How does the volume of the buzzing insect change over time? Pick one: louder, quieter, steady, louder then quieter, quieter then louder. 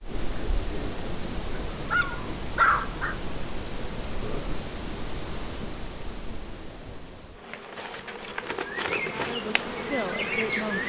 quieter then louder.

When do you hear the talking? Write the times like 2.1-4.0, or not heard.
9.1-10.8.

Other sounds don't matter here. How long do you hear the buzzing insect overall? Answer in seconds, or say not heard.
11 s.